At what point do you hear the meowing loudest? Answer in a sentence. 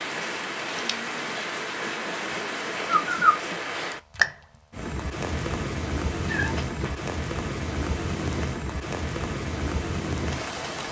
The volume of the meowing peaks at 3 seconds.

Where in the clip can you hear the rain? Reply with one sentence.
The rain can be heard from 0.0 to 10.8 s.